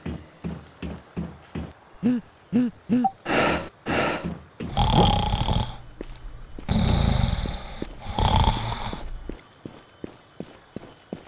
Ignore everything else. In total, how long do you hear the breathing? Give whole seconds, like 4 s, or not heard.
7 s.